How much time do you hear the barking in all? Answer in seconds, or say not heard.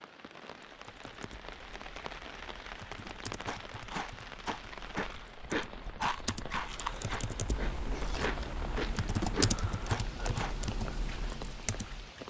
not heard.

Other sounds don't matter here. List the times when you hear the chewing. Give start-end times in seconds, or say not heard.
3.5-10.6.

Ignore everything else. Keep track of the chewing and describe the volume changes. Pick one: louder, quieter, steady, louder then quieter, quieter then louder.
steady.